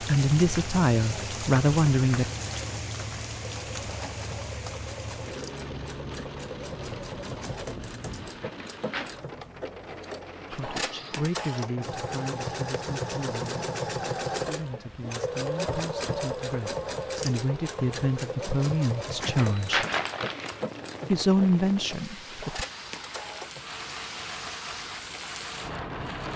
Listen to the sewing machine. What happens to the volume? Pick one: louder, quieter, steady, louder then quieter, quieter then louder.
louder then quieter.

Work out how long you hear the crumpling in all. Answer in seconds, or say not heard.
2 s.